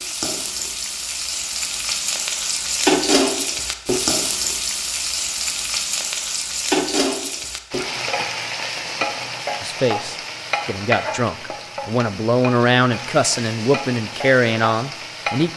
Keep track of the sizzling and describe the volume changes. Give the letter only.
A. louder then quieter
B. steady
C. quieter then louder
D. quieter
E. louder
D.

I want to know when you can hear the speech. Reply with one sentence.
The speech can be heard from 9.6 to 15.5 s.